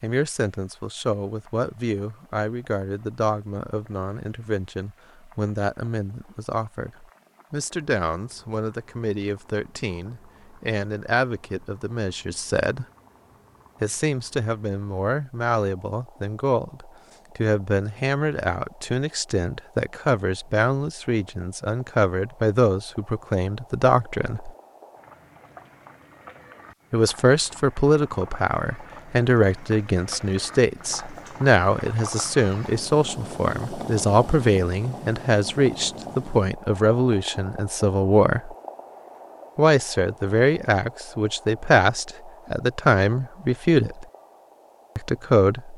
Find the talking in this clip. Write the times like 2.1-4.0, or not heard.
0.0-12.8, 13.8-24.5, 26.9-38.5, 39.5-44.0, 45.0-45.7.